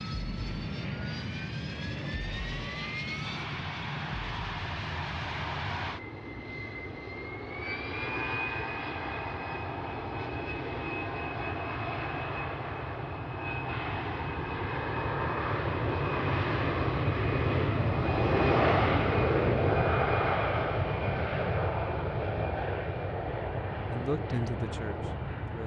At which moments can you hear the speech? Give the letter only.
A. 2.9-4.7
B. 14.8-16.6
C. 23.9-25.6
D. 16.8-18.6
C.